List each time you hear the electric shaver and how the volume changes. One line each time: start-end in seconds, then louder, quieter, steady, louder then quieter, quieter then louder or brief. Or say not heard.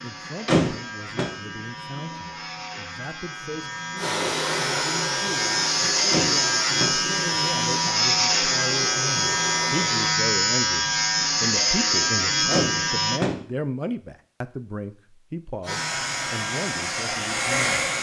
0.0-13.2 louder
15.7-17.9 brief.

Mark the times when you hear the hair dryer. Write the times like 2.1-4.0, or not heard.
4.0-10.2, 15.6-17.9.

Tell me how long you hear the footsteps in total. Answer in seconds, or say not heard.
not heard.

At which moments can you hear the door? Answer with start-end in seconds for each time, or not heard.
0.5-1.3, 6.1-7.0, 12.5-13.4.